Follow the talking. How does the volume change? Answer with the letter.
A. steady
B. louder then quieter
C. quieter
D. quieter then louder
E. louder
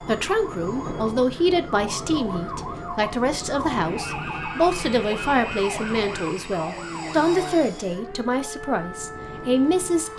A.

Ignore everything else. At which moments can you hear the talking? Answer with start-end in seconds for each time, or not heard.
0.1-10.1.